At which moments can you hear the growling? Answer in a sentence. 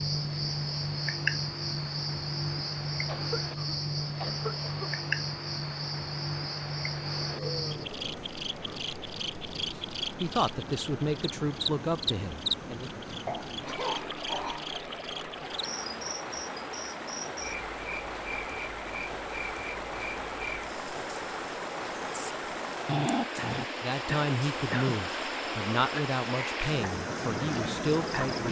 You can hear the growling from 7.2 to 8.8 s and from 22.9 to 23.6 s.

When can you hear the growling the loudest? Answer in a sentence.
The volume of the growling peaks at 23 seconds.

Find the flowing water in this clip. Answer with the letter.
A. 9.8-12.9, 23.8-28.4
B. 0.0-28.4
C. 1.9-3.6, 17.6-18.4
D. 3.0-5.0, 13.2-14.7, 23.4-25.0
B.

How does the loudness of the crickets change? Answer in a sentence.
The volume of the crickets goes down.